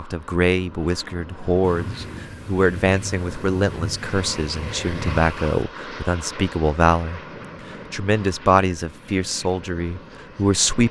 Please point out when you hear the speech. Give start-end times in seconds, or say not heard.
0.0-7.2, 7.9-10.8.